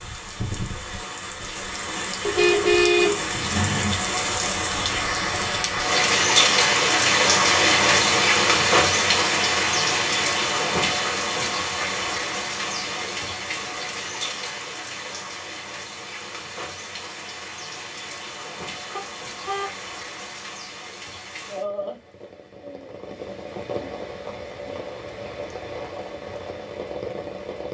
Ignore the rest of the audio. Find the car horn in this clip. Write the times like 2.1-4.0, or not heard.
2.2-4.0, 18.9-19.7.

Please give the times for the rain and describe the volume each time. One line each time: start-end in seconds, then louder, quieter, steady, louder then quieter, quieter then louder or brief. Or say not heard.
0.0-27.6 louder then quieter.